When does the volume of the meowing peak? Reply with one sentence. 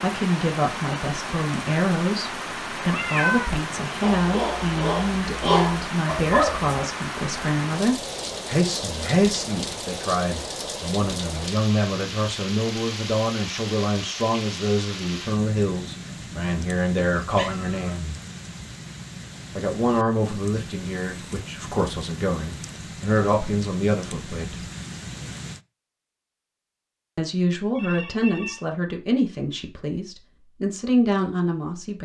The volume of the meowing peaks at 3 seconds.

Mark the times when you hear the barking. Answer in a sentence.
The barking can be heard from 4.0 to 6.7 s.